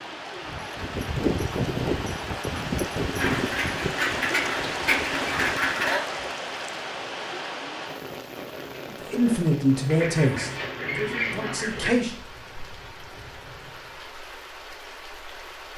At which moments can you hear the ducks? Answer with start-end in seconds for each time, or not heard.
3.1-6.0, 9.8-11.9.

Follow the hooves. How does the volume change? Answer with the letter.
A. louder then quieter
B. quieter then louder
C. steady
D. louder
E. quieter
E.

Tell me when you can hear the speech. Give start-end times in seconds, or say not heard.
9.1-12.1.